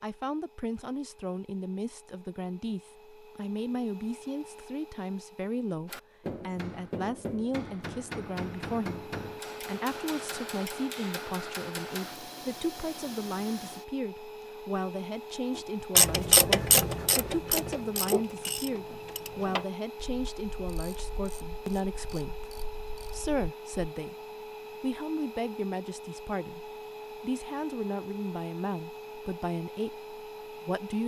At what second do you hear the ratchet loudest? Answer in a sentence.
The loudest moment of the ratchet is at 16 seconds.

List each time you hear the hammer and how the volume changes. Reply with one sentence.
You can hear the hammer from 5.8 to 12.2 s, at a steady volume.